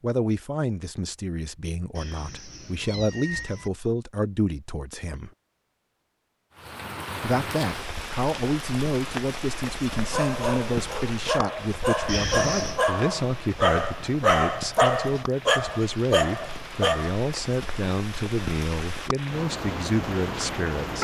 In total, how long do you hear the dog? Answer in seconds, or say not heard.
7 s.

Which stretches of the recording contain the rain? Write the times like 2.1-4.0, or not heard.
6.5-20.9.